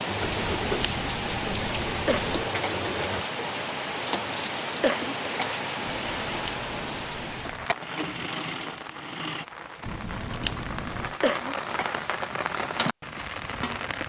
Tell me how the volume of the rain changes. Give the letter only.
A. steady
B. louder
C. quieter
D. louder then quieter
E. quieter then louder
E.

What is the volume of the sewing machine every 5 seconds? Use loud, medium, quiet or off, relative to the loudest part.
loud, loud, off.